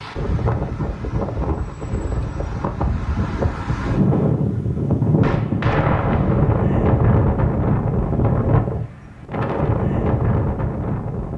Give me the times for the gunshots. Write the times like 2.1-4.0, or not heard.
5.2-6.5.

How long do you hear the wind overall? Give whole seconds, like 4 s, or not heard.
11 s.